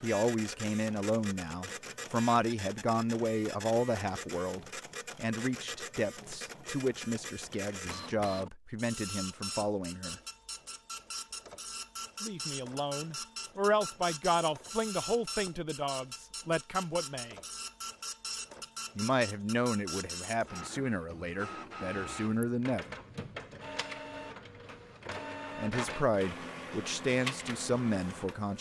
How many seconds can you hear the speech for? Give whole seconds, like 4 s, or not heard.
22 s.